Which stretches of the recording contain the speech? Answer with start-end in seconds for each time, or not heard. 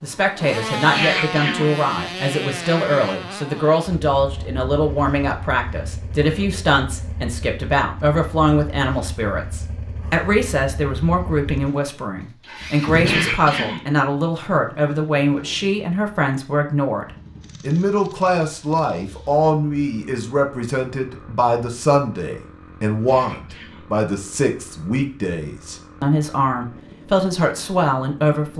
0.0-28.5.